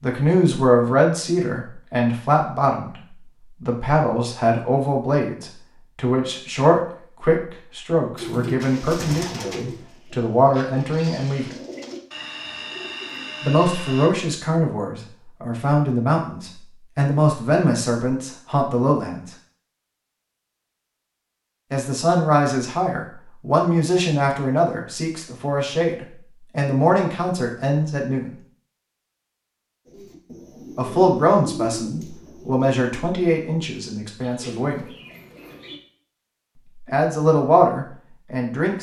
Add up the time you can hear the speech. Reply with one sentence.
The speech can be heard for 30 seconds in total.